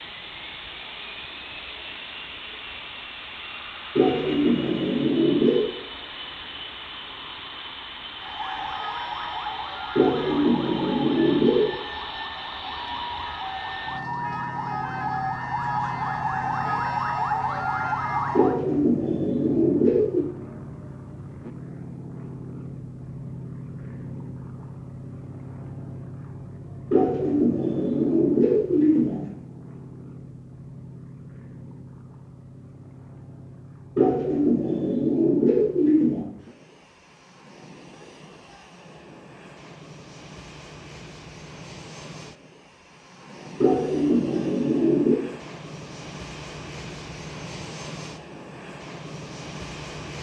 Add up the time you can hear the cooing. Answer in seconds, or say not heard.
12 s.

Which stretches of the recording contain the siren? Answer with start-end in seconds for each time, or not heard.
8.2-18.6.